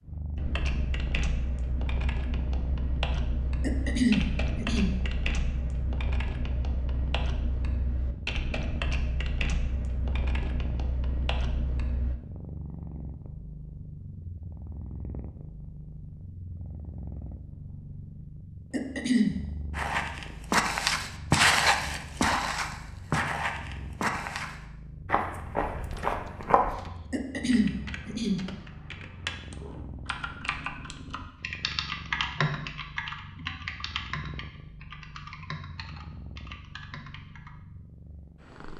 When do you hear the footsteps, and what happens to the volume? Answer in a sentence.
You can hear the footsteps from 19.7 to 26.8 s, getting quieter.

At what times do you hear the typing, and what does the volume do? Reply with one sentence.
The typing can be heard from 0.3 to 12.2 s, at a steady volume; and from 25.8 to 37.5 s, getting louder then quieter.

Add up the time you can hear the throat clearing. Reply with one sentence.
The throat clearing can be heard for 3 seconds in total.